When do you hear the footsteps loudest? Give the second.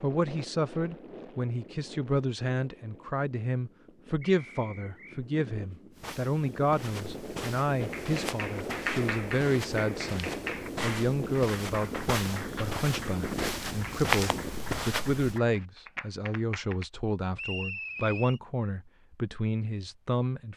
14 s.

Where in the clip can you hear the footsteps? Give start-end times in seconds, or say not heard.
5.9-15.4.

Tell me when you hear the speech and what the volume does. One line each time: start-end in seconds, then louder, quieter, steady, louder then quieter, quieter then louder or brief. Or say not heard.
0.0-20.5 steady.